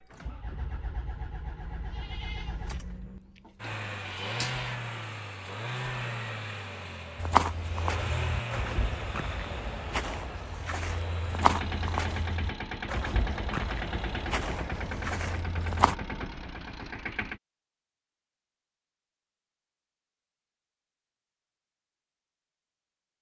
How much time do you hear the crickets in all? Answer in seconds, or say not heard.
not heard.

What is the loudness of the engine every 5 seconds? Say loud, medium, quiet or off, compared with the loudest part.
loud, loud, loud, loud, off.